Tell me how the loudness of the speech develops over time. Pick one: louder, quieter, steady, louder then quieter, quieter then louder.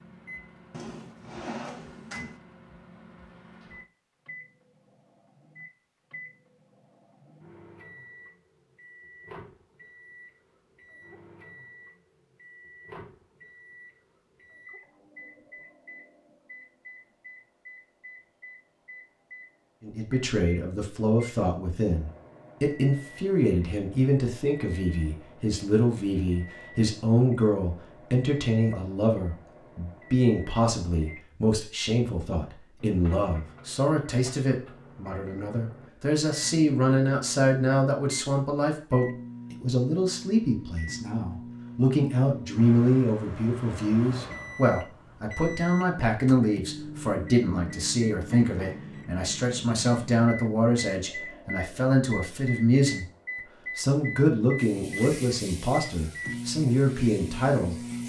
steady.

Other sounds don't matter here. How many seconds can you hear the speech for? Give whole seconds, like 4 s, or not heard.
38 s.